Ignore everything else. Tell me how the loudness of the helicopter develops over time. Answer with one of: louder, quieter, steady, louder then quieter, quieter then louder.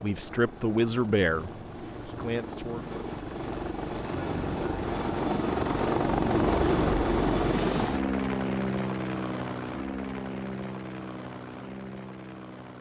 louder then quieter.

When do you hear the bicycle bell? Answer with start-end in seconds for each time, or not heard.
not heard.